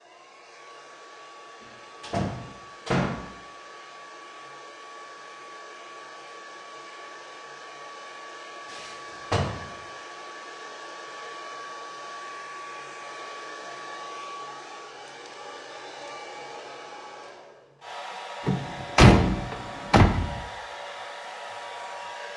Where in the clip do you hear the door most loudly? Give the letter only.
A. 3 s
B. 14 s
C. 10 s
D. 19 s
D.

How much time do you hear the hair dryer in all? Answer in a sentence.
The hair dryer can be heard for 22 seconds in total.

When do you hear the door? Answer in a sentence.
The door can be heard from 2.0 to 3.2 s, from 8.7 to 9.7 s and from 18.4 to 20.4 s.